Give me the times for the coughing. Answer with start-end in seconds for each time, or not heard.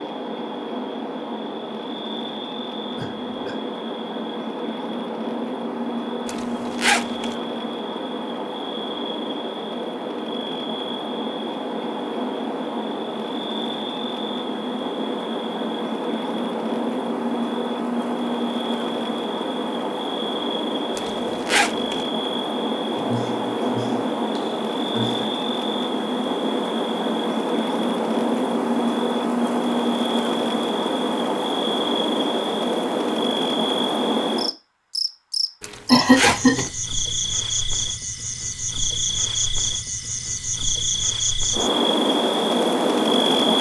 3.0-3.5, 22.9-25.3, 35.9-36.6.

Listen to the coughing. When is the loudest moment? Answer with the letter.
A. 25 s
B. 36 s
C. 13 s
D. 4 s
B.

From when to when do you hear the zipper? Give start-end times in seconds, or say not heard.
6.2-7.3, 20.9-22.1, 35.6-36.7.